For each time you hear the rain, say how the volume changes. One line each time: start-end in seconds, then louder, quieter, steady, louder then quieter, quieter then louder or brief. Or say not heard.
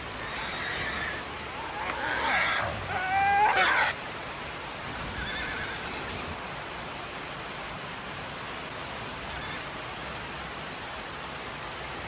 0.0-12.0 steady.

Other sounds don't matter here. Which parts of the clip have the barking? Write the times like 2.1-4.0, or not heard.
0.0-4.0.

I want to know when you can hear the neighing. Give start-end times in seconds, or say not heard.
0.2-1.2, 4.8-6.3, 9.0-9.7.